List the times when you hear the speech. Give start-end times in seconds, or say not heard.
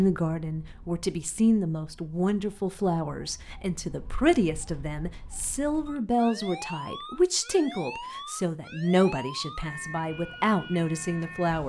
0.0-11.6.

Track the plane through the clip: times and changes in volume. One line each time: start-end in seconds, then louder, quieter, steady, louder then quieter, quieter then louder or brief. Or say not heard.
not heard.